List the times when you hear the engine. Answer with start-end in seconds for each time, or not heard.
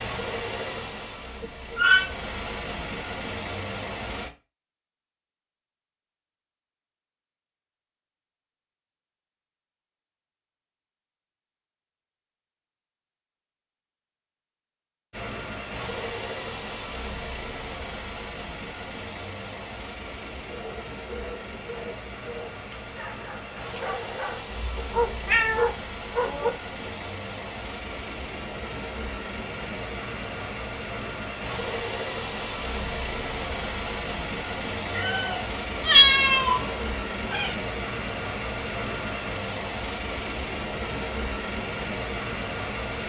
0.0-4.3, 15.1-43.0.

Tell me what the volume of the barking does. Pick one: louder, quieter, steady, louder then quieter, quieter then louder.
louder.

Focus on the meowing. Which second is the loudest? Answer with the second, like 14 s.
36 s.